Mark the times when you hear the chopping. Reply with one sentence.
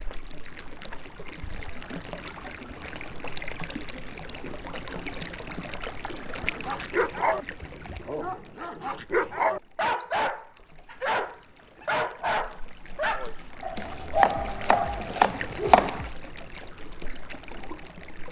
You can hear the chopping from 13.8 to 16.1 s.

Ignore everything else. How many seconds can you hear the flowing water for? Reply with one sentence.
The flowing water can be heard for 18 seconds in total.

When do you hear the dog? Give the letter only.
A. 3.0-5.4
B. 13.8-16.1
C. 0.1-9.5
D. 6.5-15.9
D.